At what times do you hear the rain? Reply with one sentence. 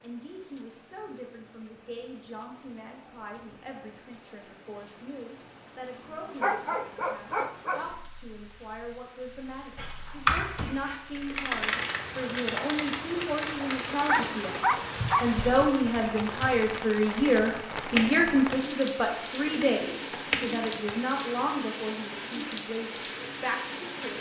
The rain can be heard from 0.0 to 24.1 s.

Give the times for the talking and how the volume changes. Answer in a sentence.
You can hear the talking from 0.0 to 24.1 s, getting louder then quieter.